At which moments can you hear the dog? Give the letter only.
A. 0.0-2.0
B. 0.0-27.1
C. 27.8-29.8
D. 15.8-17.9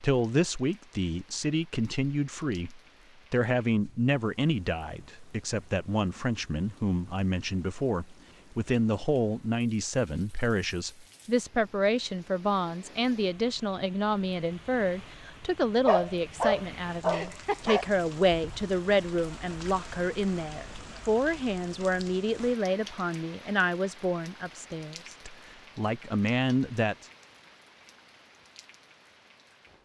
D.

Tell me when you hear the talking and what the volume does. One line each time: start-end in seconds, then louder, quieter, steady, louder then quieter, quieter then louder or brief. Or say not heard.
0.0-27.1 steady.